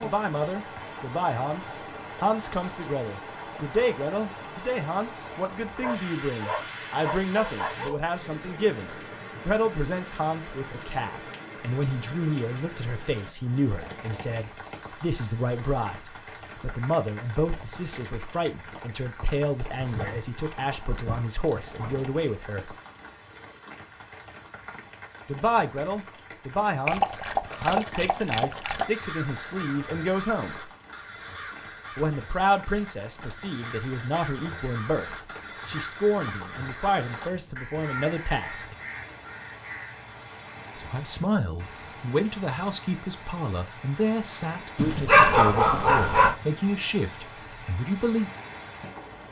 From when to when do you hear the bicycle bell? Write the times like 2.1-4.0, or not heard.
not heard.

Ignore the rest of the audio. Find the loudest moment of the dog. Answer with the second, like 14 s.
45 s.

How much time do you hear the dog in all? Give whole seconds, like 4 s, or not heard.
8 s.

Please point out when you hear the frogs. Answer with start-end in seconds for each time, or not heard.
not heard.